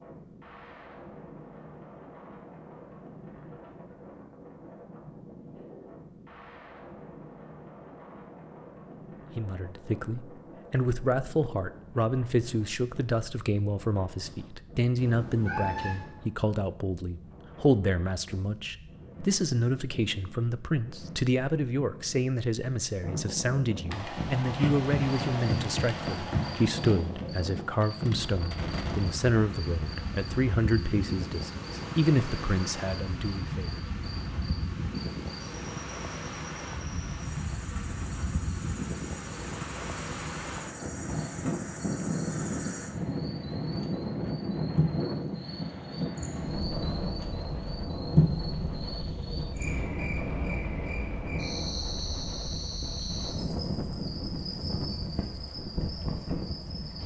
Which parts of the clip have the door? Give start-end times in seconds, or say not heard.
not heard.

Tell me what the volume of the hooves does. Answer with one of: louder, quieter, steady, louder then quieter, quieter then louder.
quieter then louder.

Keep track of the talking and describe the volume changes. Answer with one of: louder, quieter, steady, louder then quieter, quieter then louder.
steady.